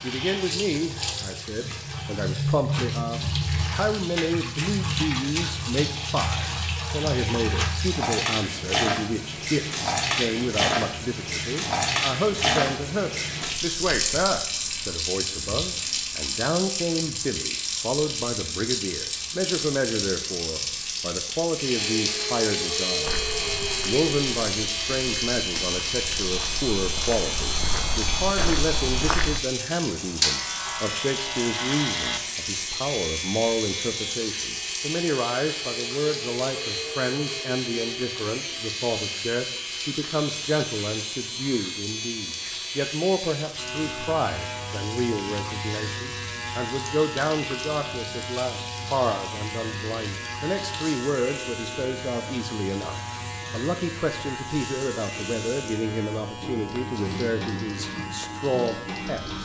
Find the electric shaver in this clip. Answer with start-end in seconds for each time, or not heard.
21.5-59.3.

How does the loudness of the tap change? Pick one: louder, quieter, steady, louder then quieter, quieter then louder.
quieter.